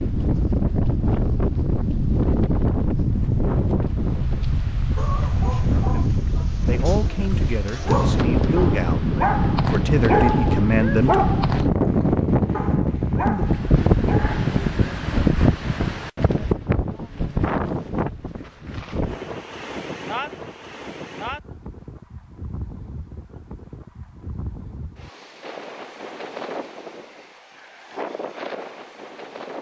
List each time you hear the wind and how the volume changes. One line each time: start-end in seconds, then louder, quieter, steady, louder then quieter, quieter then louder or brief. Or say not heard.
0.0-29.5 quieter.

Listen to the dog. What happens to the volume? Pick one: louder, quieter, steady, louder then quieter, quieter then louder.
louder then quieter.